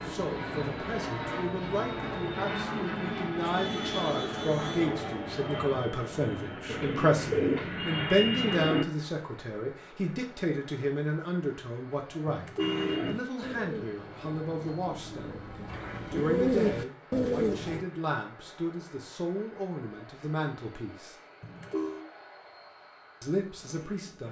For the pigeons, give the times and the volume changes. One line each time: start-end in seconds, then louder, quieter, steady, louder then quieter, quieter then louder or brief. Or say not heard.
6.7-8.8 brief
12.6-17.9 quieter then louder.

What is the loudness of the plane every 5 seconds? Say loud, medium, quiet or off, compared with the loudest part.
loud, medium, quiet, quiet, quiet.